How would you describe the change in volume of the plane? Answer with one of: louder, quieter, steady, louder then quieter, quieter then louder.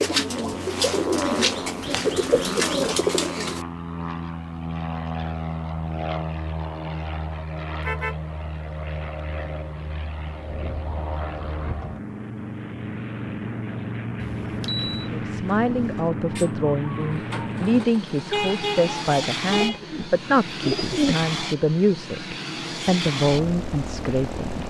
steady.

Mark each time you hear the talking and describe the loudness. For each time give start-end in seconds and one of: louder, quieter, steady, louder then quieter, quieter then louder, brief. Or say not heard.
15.1-24.6 steady.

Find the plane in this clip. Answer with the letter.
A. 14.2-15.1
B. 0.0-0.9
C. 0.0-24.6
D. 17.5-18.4
C.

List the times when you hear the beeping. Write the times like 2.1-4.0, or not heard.
14.2-15.1.